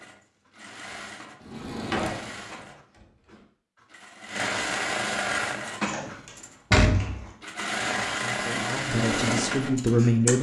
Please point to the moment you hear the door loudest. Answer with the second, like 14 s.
7 s.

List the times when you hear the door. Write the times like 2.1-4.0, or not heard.
1.4-2.4, 5.8-7.2.